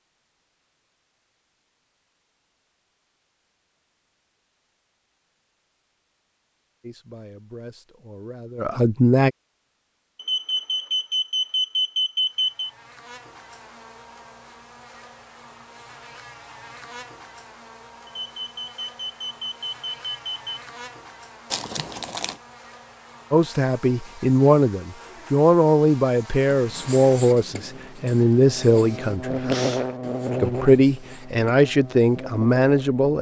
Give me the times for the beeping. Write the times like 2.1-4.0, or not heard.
10.2-12.7, 18.2-20.6.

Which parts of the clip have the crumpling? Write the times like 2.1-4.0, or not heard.
21.5-22.4.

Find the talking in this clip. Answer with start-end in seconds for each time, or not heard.
6.8-9.3, 23.3-29.5, 30.4-33.1.